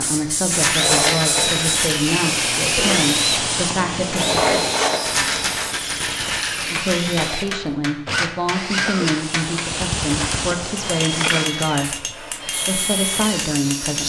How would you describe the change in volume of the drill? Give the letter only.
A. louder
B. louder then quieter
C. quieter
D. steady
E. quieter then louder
C.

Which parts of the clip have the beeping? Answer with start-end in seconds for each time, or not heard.
not heard.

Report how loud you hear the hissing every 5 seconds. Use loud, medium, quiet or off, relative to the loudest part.
loud, medium, loud.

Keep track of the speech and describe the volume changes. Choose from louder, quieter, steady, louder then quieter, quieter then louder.
steady.